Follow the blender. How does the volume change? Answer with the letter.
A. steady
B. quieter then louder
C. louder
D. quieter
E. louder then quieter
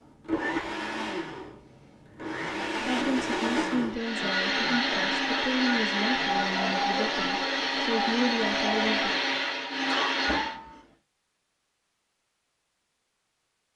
C.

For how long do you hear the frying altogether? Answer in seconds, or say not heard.
not heard.